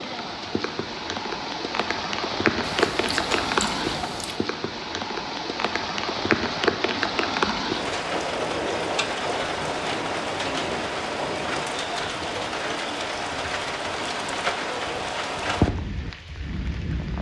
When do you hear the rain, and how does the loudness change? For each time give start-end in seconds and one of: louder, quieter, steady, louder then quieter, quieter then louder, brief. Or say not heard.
0.0-17.1 steady.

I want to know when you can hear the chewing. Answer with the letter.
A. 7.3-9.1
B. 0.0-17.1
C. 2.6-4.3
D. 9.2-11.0
C.